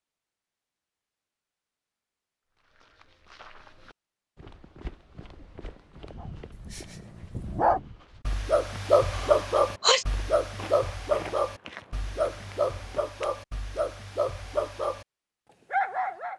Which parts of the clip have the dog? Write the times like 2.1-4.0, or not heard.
6.2-15.1, 15.7-16.3.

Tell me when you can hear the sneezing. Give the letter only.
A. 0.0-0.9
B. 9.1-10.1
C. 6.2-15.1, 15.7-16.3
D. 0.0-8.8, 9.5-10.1
B.